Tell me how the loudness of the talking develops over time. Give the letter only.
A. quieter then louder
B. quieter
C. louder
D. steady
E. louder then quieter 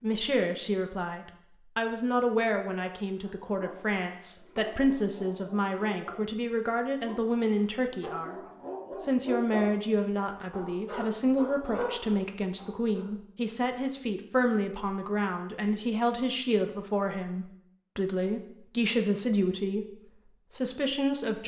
D.